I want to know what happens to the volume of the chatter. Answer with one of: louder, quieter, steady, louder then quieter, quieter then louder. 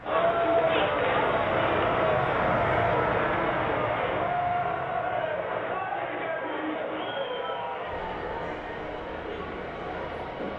quieter.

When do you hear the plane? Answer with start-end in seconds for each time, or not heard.
0.0-10.5.